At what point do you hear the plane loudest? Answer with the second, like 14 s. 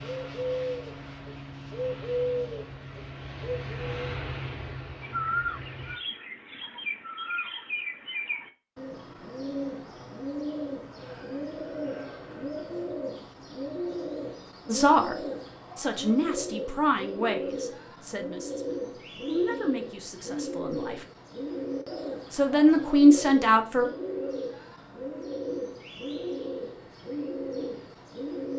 4 s.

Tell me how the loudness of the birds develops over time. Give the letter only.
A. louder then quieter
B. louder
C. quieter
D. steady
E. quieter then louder
D.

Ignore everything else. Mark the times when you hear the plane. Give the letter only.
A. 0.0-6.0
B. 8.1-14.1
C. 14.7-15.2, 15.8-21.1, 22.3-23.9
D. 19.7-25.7
A.